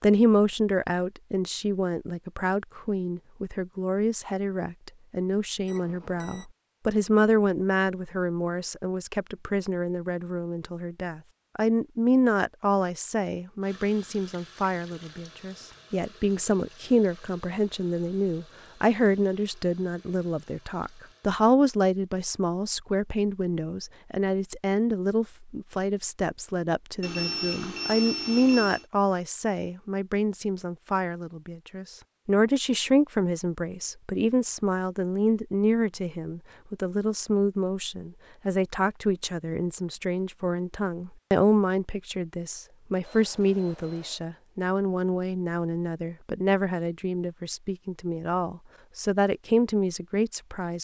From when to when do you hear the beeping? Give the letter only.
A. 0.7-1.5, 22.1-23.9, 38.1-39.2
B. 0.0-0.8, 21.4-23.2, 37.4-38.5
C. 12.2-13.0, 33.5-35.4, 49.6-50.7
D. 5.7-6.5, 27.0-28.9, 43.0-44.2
D.